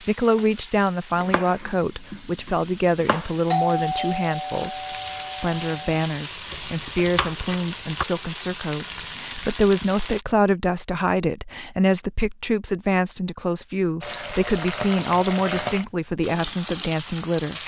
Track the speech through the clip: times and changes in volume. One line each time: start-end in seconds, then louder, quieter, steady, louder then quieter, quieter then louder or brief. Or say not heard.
0.1-17.6 steady.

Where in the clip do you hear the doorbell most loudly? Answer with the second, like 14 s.
4 s.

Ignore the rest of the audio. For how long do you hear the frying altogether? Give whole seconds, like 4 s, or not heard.
14 s.